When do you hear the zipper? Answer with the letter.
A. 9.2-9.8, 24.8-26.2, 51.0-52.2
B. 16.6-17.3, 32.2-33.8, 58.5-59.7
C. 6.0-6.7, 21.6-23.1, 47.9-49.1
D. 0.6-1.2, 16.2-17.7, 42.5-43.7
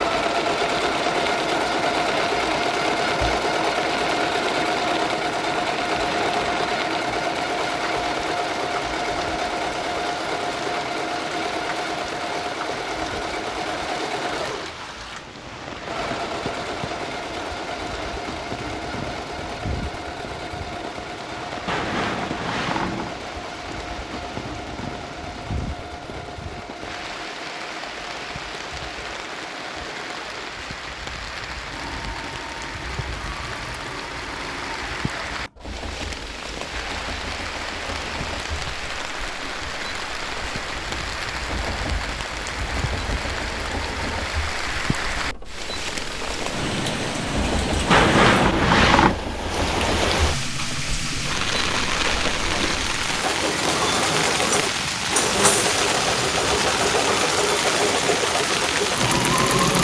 C.